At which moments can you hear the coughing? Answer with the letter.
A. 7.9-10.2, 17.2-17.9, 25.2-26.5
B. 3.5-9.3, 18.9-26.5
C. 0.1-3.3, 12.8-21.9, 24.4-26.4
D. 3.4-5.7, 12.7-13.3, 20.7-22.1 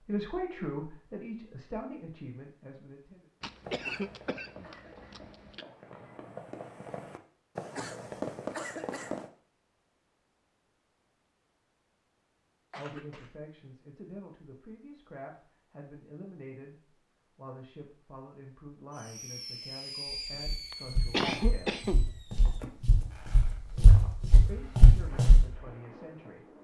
D.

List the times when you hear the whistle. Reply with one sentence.
The whistle can't be heard in this clip.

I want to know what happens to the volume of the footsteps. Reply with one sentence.
The volume of the footsteps goes up.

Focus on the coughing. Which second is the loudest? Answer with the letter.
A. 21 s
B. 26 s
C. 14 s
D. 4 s
A.